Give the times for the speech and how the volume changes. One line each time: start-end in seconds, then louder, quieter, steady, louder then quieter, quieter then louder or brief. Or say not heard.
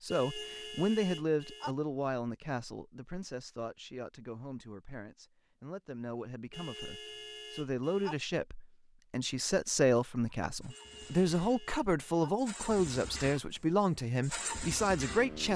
0.0-15.5 quieter then louder.